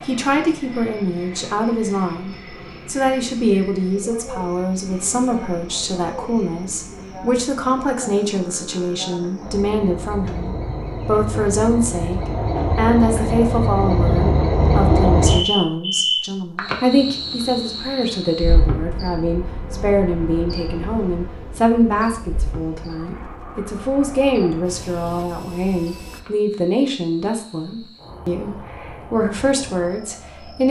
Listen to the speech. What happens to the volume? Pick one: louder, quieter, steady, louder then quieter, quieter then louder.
steady.